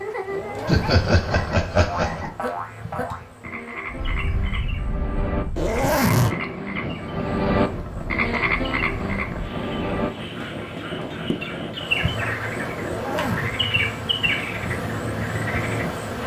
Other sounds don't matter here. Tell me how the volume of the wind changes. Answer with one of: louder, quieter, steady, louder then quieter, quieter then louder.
steady.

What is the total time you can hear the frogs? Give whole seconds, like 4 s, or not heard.
16 s.